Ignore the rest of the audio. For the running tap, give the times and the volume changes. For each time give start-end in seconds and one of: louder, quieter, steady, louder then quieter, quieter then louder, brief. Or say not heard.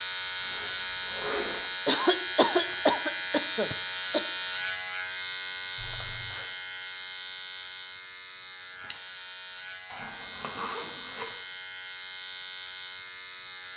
not heard.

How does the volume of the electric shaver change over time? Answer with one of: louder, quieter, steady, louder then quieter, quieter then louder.
quieter.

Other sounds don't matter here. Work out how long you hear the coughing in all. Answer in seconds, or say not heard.
2 s.